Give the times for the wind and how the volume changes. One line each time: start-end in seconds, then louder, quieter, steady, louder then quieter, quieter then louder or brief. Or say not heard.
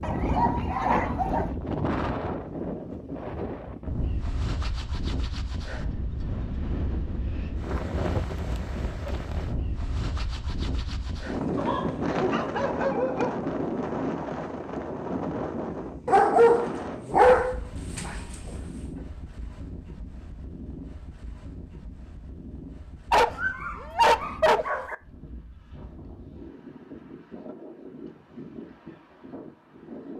0.0-30.1 quieter.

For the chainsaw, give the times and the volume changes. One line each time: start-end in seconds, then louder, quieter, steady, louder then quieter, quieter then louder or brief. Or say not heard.
not heard.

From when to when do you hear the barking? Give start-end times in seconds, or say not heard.
0.0-1.5, 11.6-13.4, 16.1-18.6, 23.1-24.9.